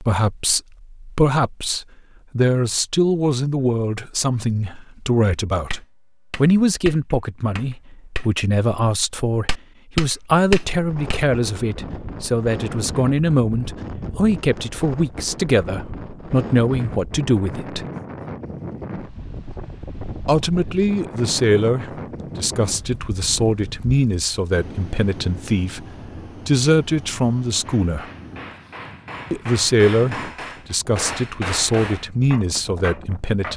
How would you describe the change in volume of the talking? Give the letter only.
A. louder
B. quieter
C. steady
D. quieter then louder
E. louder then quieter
C.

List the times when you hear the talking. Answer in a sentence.
The talking can be heard from 0.0 to 17.9 s, from 20.2 to 28.1 s and from 29.3 to 33.5 s.